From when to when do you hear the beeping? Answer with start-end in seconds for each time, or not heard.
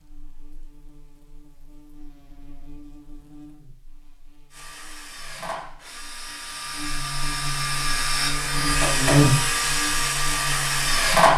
not heard.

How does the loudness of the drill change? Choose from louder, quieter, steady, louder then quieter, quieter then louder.
louder.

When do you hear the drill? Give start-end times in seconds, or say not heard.
4.5-11.3.